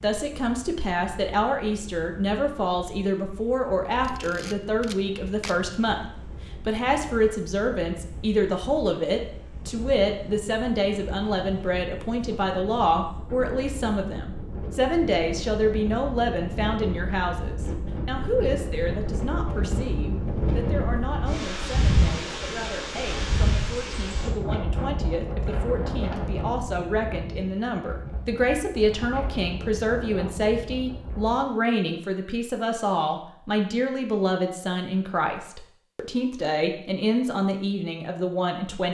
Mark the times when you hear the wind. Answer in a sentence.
You can hear the wind from 0.0 to 31.4 s.